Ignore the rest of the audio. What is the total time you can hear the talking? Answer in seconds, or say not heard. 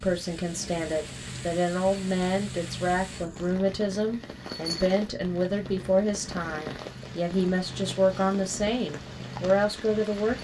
10 s.